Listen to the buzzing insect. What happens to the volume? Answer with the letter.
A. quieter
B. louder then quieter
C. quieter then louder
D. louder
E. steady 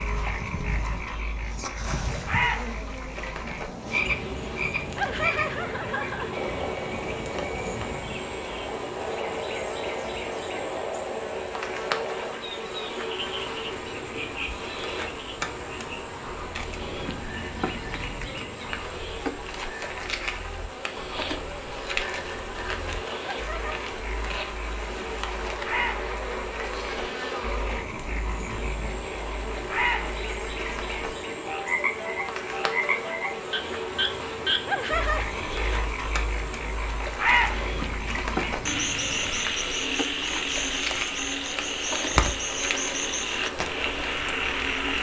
E.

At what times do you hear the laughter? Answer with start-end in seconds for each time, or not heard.
5.0-6.3, 23.2-23.8, 34.6-35.2.